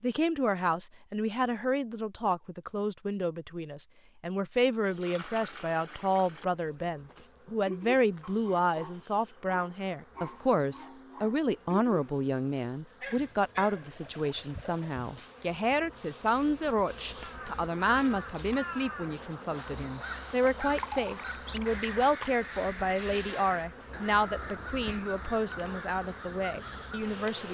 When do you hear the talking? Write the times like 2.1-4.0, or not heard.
0.0-27.4.